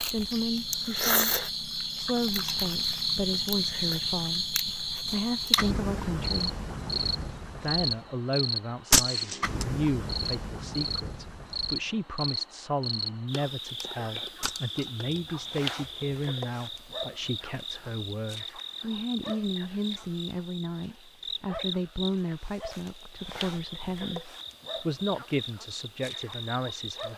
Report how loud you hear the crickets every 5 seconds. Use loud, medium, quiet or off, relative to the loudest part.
loud, loud, medium, medium, medium, medium.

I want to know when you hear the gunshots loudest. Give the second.
9 s.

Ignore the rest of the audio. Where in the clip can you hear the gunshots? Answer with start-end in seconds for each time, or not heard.
8.9-9.7, 14.4-14.9.